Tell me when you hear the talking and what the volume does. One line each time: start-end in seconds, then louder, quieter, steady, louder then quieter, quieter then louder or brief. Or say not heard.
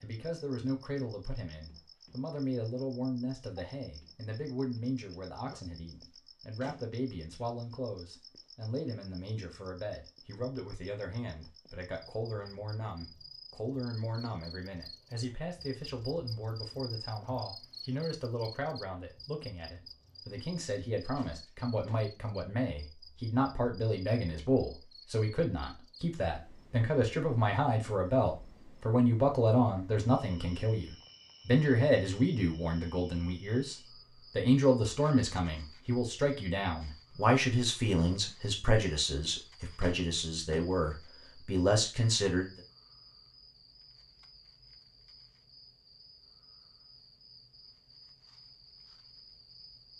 0.0-42.6 louder.